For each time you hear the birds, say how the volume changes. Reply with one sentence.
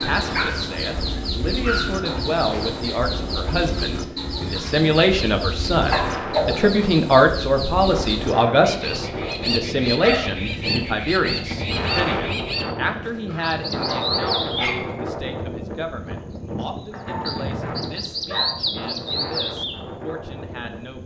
You can hear the birds from 0.0 to 21.0 s, at a steady volume.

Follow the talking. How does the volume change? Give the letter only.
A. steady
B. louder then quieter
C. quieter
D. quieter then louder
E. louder
B.